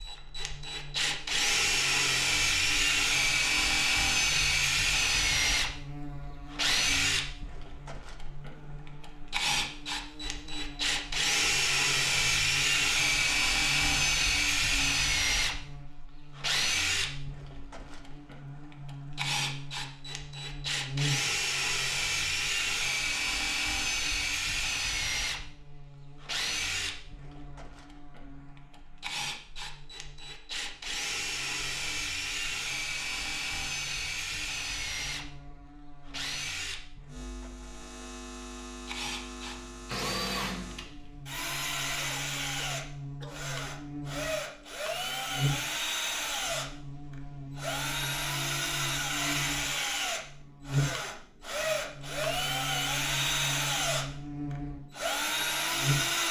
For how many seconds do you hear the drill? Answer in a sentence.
The drill can be heard for 56 seconds in total.